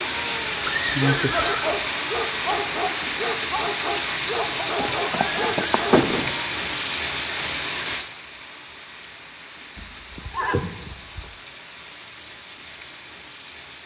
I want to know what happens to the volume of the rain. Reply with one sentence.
The volume of the rain goes down.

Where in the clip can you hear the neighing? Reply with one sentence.
You can hear the neighing from 0.7 to 1.7 s, from 4.8 to 6.3 s and from 9.8 to 11.3 s.